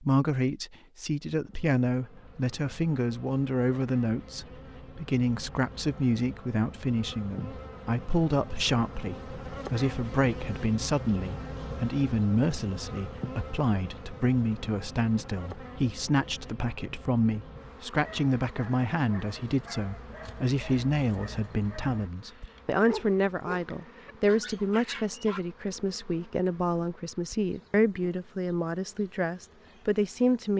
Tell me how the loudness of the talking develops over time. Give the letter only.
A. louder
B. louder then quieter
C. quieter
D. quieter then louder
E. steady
E.